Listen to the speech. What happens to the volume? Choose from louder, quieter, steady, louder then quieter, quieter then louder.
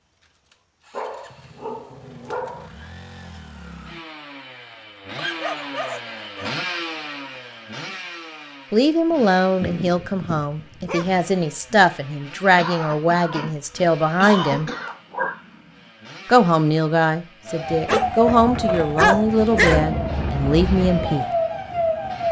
steady.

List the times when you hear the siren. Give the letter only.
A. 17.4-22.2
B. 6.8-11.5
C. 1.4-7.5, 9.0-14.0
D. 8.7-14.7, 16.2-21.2
A.